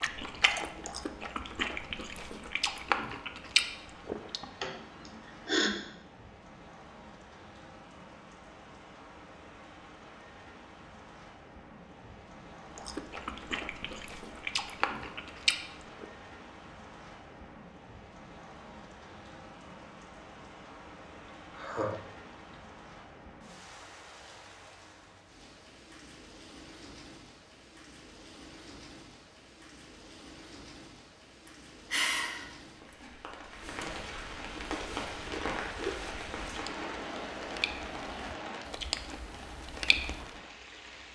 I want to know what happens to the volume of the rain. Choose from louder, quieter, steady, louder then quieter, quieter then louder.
louder.